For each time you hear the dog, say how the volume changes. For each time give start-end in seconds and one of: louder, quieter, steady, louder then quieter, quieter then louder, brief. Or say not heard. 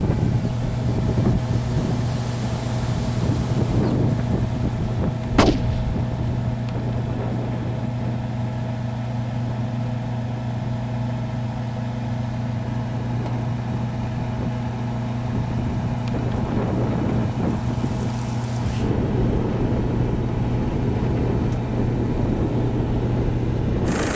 not heard.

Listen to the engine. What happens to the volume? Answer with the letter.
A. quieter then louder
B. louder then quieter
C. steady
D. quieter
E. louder
C.